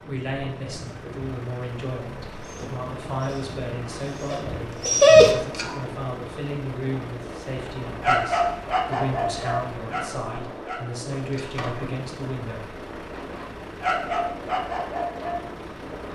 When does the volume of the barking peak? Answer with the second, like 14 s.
5 s.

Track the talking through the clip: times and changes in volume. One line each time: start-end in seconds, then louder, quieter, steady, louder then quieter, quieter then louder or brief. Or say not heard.
0.1-12.7 steady.